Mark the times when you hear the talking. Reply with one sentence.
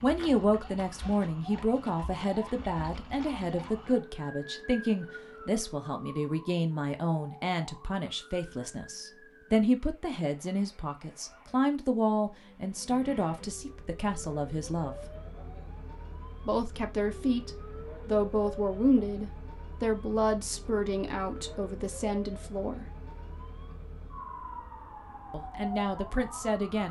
You can hear the talking from 0.0 to 15.1 s, from 16.4 to 22.9 s and from 25.3 to 26.8 s.